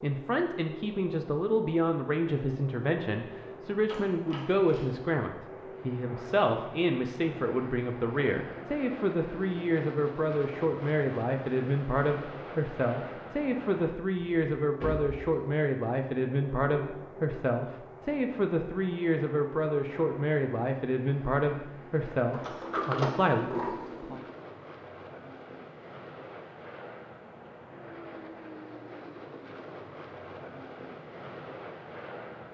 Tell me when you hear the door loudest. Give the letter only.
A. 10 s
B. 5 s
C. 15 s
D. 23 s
D.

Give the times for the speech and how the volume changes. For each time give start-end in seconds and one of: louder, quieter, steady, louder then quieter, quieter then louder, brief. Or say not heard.
0.0-24.2 steady.